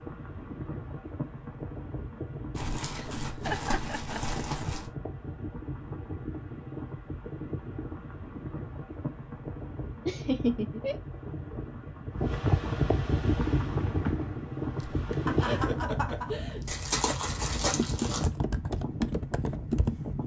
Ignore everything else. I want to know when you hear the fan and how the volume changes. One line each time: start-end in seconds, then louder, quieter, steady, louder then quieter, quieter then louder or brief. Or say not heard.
0.0-20.2 louder then quieter.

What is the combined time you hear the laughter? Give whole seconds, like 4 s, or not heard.
4 s.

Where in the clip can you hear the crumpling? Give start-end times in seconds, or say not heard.
2.5-4.9, 16.6-18.3.